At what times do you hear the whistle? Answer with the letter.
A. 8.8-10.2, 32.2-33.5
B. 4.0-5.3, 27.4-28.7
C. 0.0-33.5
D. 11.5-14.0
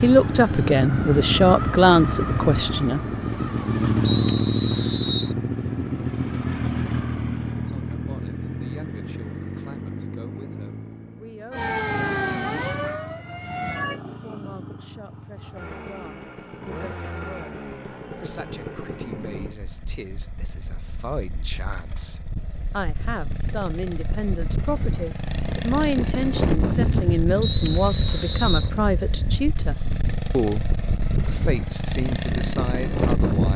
B.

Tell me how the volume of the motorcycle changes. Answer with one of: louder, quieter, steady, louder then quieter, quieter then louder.
quieter then louder.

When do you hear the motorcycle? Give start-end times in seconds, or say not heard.
0.0-33.5.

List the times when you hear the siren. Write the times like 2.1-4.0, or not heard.
11.5-14.0.